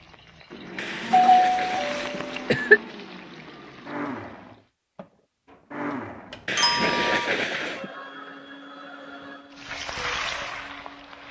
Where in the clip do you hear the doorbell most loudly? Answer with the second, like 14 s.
1 s.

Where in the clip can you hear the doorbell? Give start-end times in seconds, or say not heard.
0.8-2.4, 6.3-7.3.